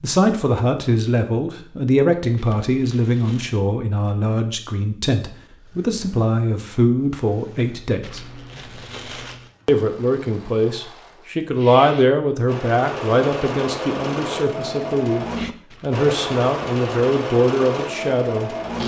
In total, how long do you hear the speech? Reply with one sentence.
The speech can be heard for 17 seconds in total.